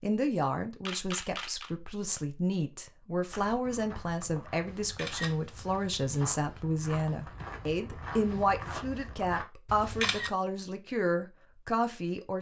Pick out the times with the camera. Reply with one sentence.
You can hear the camera from 0.8 to 1.7 s, from 4.7 to 6.2 s and from 9.7 to 10.3 s.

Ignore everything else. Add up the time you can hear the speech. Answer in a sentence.
The speech can be heard for 12 seconds in total.